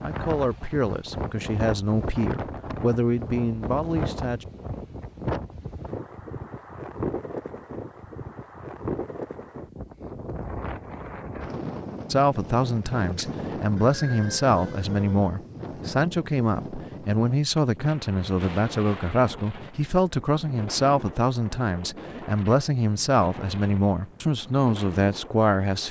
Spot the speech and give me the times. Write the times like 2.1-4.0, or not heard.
0.0-4.5, 12.1-25.8.